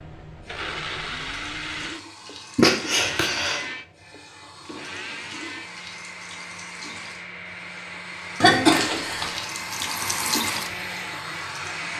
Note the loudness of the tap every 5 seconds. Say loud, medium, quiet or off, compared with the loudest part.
quiet, medium, loud.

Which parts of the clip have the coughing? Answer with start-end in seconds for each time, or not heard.
2.5-3.6, 8.4-9.4.